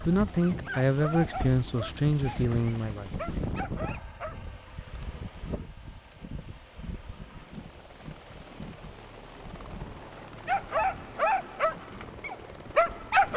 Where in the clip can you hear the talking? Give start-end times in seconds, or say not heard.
0.0-3.1.